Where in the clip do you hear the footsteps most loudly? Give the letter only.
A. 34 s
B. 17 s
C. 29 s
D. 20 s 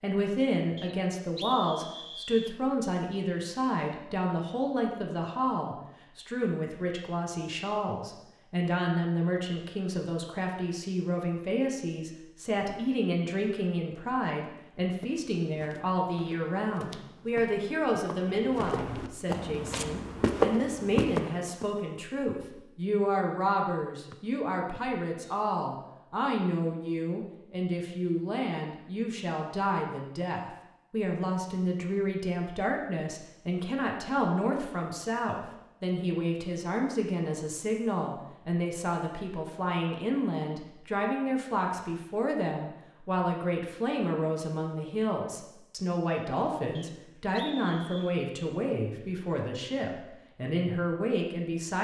D.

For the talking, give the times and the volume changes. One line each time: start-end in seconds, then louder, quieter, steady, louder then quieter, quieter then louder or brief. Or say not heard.
0.0-51.8 steady.